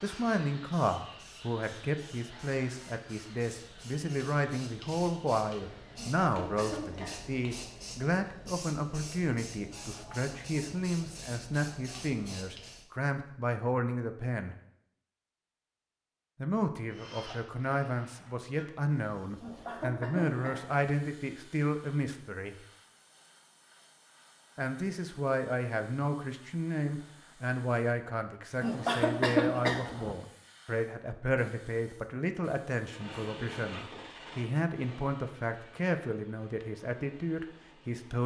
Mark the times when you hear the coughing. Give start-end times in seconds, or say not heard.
6.0-7.5, 19.4-20.9, 28.6-30.1.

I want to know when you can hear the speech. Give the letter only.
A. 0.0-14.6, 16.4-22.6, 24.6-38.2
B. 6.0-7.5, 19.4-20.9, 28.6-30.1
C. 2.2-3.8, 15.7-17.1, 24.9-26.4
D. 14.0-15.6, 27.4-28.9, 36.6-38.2
A.